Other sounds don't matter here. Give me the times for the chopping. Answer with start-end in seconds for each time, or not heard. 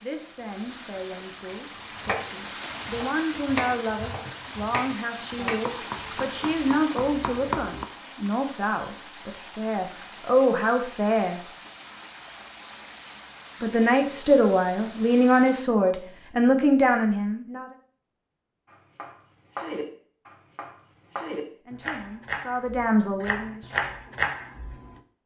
1.5-7.8, 18.7-24.9.